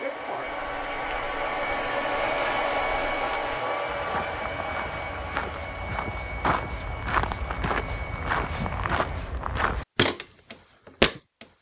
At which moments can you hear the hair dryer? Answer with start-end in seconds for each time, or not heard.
0.0-9.2.